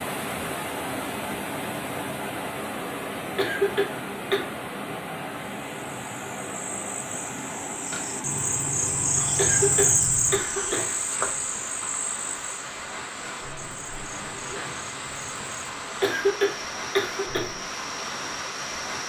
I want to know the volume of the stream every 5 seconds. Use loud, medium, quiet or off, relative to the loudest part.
loud, loud, medium, loud.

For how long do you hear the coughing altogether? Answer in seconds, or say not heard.
4 s.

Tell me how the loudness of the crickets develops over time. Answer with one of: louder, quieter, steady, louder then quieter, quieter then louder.
louder then quieter.